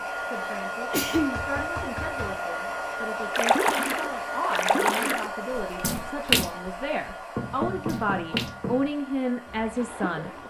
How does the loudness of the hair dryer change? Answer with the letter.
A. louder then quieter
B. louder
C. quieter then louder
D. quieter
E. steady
D.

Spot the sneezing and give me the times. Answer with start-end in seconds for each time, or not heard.
0.3-1.4.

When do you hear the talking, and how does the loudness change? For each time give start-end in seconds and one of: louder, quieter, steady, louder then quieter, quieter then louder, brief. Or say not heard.
0.0-10.3 louder.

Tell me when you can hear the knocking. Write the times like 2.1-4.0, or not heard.
1.1-2.4, 7.3-8.9.